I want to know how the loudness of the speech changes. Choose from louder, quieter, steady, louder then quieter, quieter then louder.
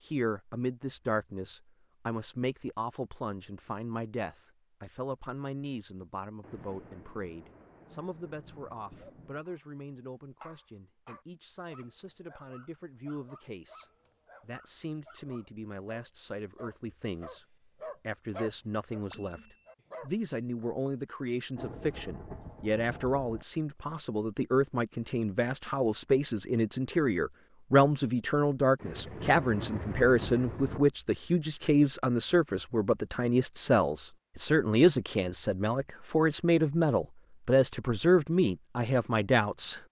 quieter then louder.